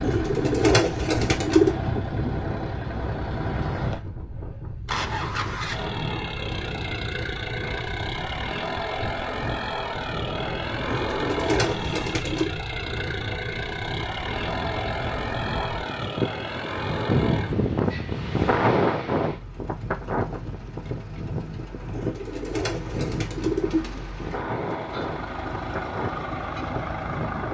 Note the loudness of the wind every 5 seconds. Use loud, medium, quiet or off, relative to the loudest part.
medium, medium, medium, loud, medium, medium.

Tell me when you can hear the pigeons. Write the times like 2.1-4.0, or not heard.
0.0-1.8, 10.8-12.6, 21.9-24.1.